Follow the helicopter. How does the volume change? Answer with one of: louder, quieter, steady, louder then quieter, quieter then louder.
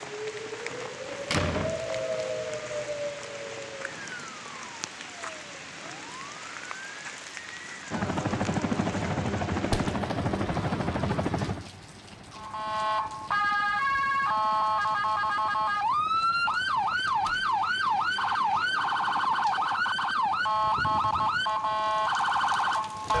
quieter.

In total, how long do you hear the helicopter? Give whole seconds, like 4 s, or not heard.
15 s.